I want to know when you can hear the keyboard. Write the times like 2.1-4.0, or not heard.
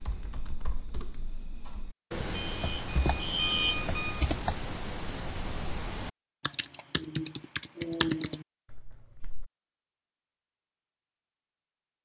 0.0-9.5.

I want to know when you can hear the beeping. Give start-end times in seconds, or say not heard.
2.3-4.2.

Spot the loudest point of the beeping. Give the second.
4 s.